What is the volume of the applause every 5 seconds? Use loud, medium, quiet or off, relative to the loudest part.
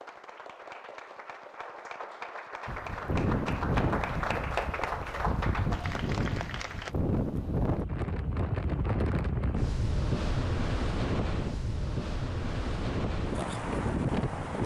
loud, loud, off.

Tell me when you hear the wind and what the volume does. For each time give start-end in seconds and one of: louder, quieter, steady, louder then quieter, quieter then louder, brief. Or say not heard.
2.6-14.6 steady.